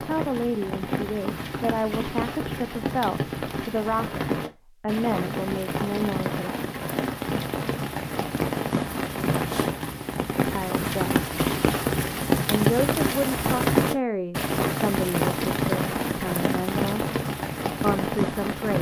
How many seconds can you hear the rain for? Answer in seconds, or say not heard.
19 s.